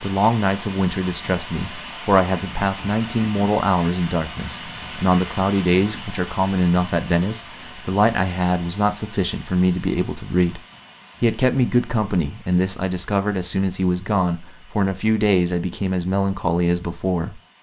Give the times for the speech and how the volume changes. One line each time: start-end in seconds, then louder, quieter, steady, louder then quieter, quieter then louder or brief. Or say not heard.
0.0-10.6 steady
11.2-17.4 steady.